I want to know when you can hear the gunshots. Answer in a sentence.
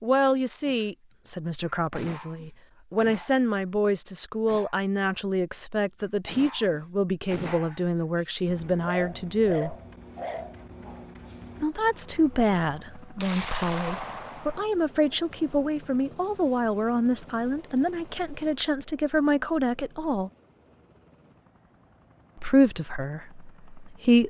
The gunshots can be heard from 13.2 to 14.7 s.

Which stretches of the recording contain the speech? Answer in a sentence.
The speech can be heard from 0.0 to 9.8 s, from 11.6 to 20.3 s and from 22.4 to 24.2 s.